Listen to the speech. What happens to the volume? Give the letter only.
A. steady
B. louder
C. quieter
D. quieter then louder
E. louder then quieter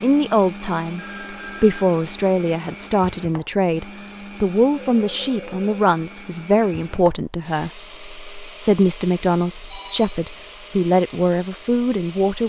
A.